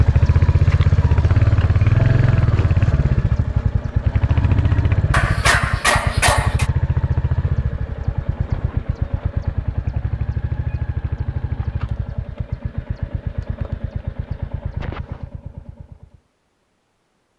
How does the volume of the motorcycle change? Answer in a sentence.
The volume of the motorcycle goes down.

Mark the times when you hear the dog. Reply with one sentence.
The dog can be heard from 5.1 to 6.7 s.